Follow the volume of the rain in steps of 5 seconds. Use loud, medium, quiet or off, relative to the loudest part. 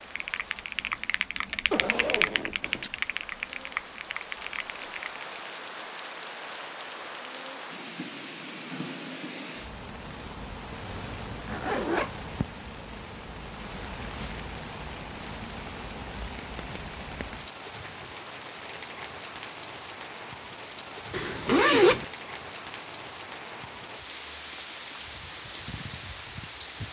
medium, loud, loud, loud, loud, loud.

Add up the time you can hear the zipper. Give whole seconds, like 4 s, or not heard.
3 s.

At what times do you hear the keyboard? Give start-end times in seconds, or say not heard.
0.0-5.3.